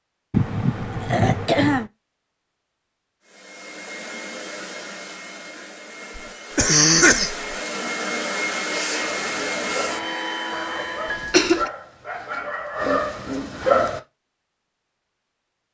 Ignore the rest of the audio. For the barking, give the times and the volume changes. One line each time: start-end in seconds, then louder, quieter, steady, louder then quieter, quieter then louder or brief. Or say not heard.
9.0-14.0 louder.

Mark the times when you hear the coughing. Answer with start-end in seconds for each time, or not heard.
0.3-1.9, 6.2-7.3, 11.1-11.7.